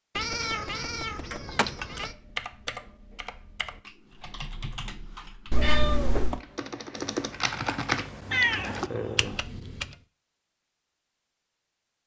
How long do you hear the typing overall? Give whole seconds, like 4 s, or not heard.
8 s.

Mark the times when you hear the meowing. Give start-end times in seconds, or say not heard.
0.1-2.1, 5.5-6.4, 8.3-9.4.